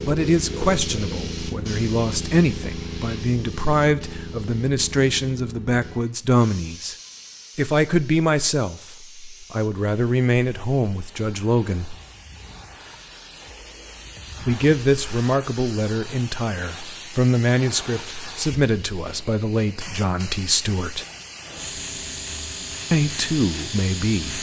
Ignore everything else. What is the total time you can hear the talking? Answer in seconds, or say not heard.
19 s.